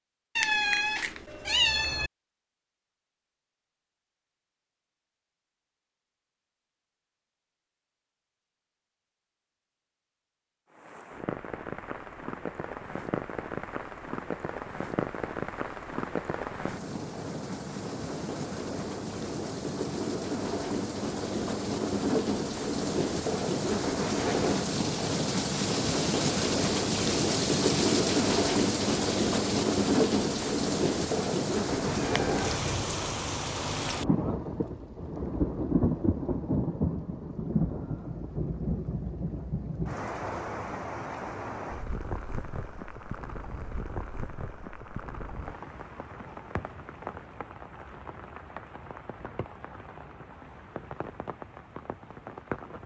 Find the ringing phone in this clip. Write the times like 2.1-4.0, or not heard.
not heard.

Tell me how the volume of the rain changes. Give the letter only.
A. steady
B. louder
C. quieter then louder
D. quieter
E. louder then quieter
E.